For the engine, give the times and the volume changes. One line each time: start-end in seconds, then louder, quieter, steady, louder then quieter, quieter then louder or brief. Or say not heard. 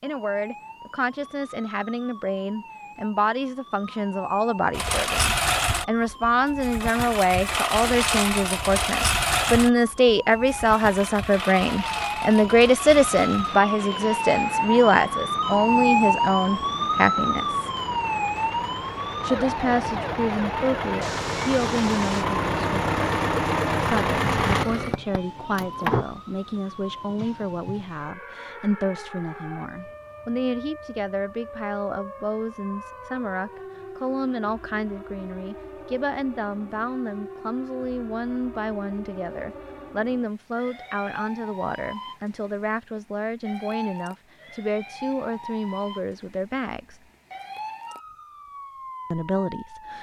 4.7-26.1 quieter then louder.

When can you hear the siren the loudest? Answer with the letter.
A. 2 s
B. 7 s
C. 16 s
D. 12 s
C.